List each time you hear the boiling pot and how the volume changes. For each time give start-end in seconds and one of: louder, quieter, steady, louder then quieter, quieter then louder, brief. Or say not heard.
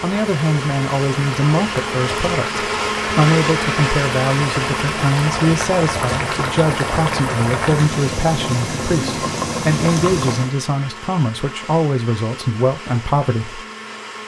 0.1-10.5 louder.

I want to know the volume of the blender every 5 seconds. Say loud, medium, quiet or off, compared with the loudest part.
loud, medium, medium.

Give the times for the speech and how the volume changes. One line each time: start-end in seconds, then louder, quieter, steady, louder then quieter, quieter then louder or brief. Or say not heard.
0.0-13.7 steady.